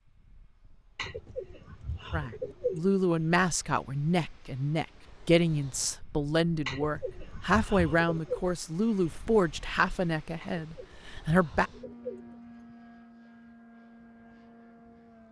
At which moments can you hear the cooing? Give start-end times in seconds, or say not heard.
0.9-2.9, 6.7-8.4, 10.4-12.6.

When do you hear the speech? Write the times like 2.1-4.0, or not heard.
2.1-11.7.